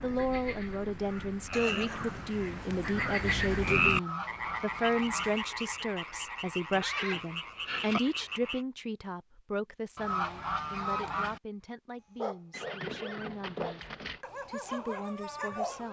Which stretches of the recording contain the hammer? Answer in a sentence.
You can't hear the hammer here.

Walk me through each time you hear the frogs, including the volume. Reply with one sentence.
You can hear the frogs from 0.0 to 8.7 s, getting louder then quieter.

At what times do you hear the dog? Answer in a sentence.
The dog can be heard from 12.2 to 15.8 s.